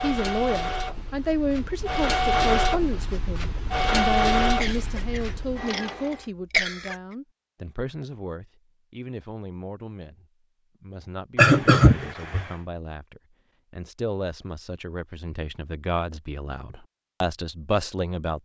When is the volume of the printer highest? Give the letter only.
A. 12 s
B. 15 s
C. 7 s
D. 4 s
D.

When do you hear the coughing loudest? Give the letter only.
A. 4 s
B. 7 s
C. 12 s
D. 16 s
C.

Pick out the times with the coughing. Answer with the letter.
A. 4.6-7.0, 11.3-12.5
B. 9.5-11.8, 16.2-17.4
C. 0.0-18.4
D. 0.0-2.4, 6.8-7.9
A.